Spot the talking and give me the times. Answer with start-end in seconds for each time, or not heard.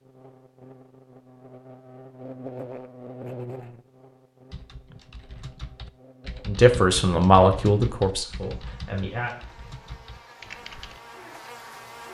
6.5-9.3.